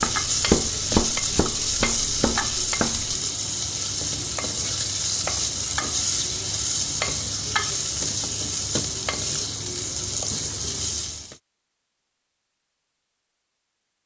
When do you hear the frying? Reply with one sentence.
You can hear the frying from 0.0 to 11.3 s.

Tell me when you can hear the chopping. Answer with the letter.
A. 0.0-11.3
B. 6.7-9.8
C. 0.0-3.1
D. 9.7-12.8
C.